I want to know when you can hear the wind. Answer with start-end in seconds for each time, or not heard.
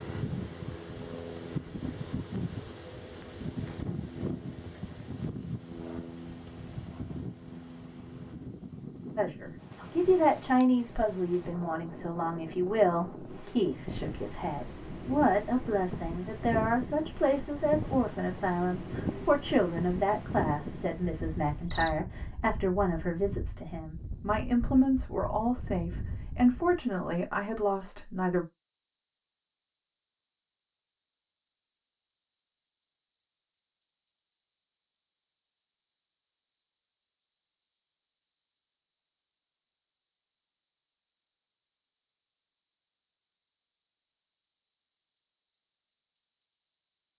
0.0-26.8.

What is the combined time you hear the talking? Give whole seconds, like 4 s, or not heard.
19 s.